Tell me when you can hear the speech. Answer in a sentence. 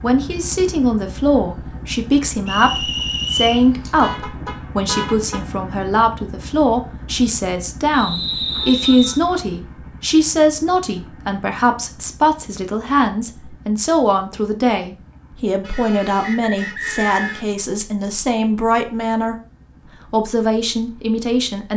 The speech can be heard from 0.0 to 19.4 s and from 20.1 to 21.7 s.